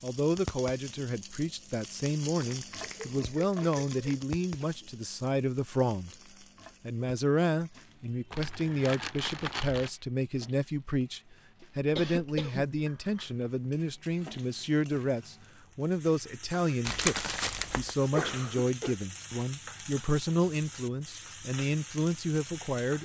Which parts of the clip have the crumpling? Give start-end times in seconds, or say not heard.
2.4-4.2, 8.3-9.9, 16.9-17.9.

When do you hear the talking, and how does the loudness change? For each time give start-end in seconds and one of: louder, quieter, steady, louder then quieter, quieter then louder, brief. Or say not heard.
0.0-6.1 steady
6.8-23.0 steady.